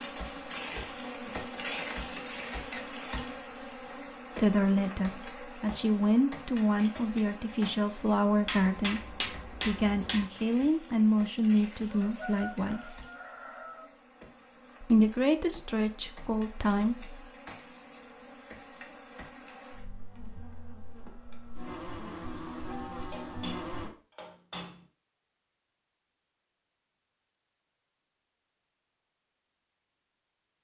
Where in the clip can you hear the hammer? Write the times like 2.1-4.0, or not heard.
8.4-10.2, 23.1-24.9.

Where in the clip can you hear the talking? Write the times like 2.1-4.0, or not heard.
4.3-13.0, 14.8-17.2.